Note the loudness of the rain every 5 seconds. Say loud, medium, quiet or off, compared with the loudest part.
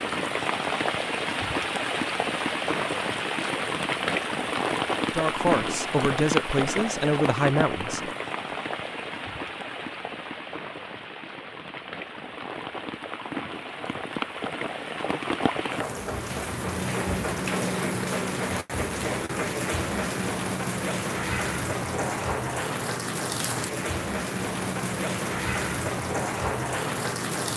loud, loud, medium, loud, loud, loud.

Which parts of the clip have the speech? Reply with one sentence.
The speech can be heard from 5.1 to 8.1 s.